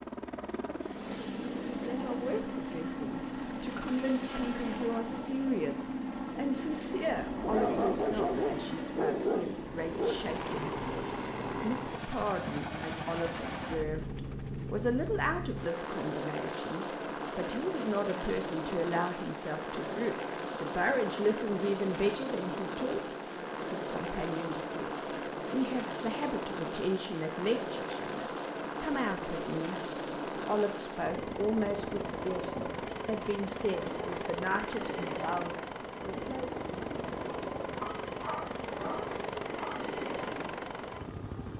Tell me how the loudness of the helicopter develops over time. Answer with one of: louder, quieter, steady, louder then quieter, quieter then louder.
steady.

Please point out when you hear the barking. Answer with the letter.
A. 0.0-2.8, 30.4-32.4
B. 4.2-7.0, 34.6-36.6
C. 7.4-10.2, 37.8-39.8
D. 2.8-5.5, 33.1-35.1
C.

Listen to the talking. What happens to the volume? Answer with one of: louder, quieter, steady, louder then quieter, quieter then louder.
steady.